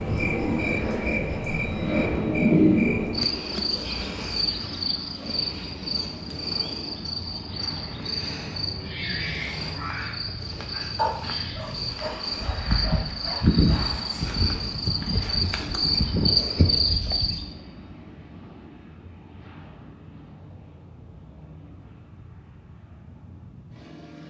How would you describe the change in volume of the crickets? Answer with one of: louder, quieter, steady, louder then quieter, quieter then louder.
quieter then louder.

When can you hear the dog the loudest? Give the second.
11 s.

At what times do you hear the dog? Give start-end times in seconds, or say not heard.
10.9-13.9.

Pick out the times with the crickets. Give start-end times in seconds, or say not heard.
0.0-17.4.